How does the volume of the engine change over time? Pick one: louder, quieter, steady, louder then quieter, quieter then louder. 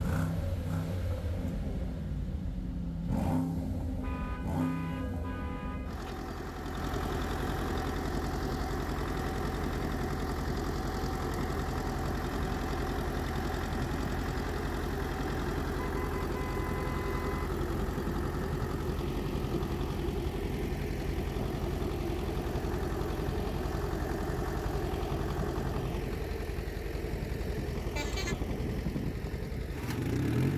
steady.